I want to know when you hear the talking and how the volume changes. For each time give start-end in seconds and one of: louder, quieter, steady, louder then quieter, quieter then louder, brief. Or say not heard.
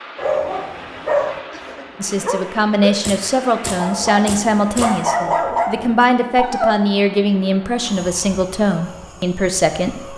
1.9-10.1 steady.